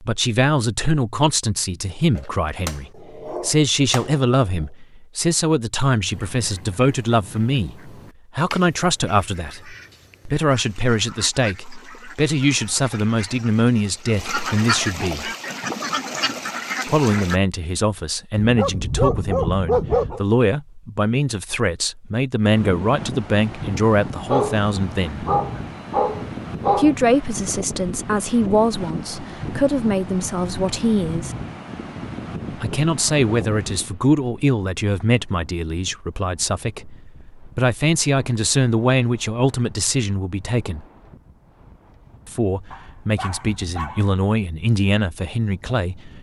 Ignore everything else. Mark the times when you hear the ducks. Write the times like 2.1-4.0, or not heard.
6.1-17.4.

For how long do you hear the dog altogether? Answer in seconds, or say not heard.
8 s.